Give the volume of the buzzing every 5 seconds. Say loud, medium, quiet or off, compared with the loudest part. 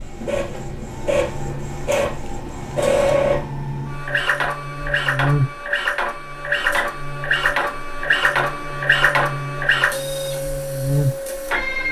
medium, loud, loud.